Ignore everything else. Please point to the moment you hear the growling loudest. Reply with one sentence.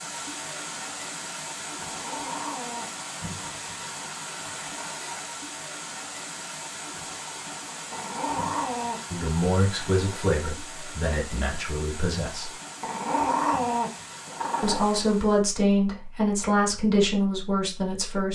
The loudest moment of the growling is at 13 seconds.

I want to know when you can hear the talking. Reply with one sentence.
You can hear the talking from 9.1 to 12.5 s and from 14.6 to 18.3 s.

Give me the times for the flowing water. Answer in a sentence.
You can hear the flowing water from 0.0 to 15.4 s.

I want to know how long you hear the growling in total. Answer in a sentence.
The growling can be heard for 4 seconds in total.